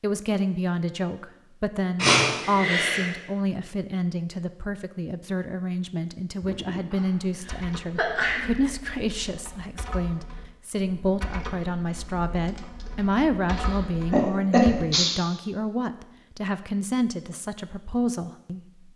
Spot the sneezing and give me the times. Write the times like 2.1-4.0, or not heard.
1.9-3.1, 6.9-8.7, 13.5-15.2.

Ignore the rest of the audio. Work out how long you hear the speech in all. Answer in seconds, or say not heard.
19 s.